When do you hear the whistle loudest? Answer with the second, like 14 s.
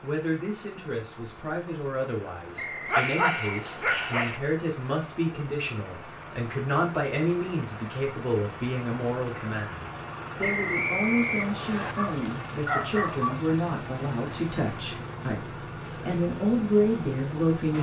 11 s.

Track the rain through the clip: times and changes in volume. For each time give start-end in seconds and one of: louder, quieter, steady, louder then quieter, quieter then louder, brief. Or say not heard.
not heard.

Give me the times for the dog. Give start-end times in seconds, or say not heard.
2.9-4.4, 11.9-13.4.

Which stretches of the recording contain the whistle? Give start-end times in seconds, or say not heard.
2.5-4.1, 10.4-11.9.